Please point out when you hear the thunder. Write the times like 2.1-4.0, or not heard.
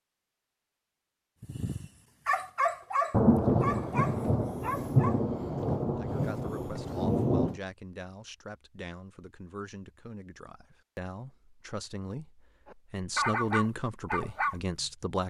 3.1-7.6.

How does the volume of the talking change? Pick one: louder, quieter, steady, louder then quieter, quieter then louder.
louder.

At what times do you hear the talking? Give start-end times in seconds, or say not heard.
6.0-15.2.